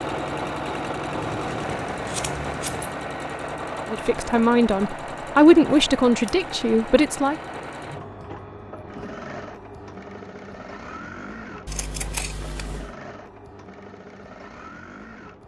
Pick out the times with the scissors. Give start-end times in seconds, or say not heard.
1.2-3.0, 5.7-6.3, 11.7-12.9.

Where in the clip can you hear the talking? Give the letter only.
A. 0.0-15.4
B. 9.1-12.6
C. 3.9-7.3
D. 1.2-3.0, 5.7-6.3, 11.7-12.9
C.